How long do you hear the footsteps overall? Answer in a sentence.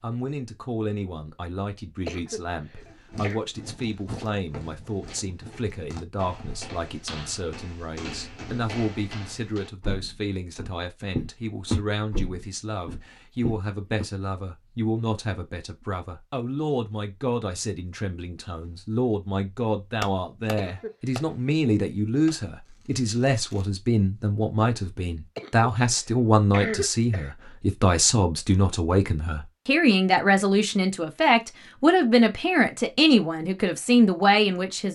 You can hear the footsteps for 11 seconds altogether.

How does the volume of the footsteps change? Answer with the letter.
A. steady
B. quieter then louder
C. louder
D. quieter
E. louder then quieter
C.